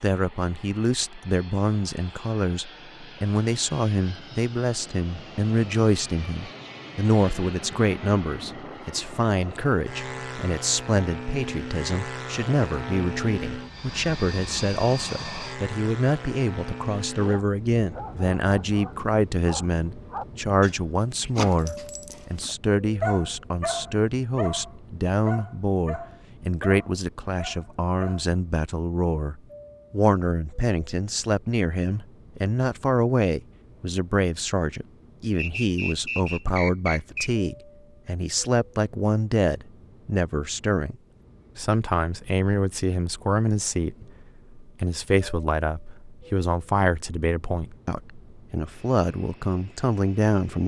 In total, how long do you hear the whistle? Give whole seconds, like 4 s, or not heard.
2 s.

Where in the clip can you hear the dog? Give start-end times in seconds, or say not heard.
17.1-28.4.